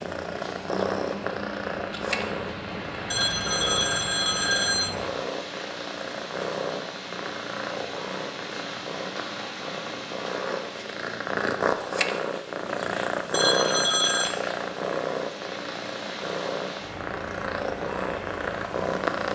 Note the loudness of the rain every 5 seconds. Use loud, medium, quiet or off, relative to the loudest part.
loud, loud, medium, loud.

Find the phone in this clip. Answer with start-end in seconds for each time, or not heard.
3.1-5.0, 13.3-14.3.